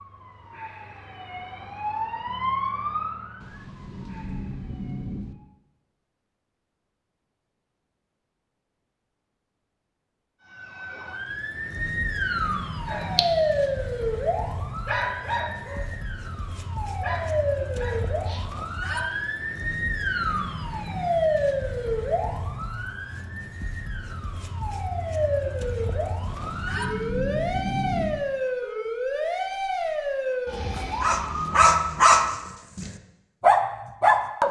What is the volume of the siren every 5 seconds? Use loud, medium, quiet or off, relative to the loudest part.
medium, off, loud, loud, loud, loud, loud.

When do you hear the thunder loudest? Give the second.
28 s.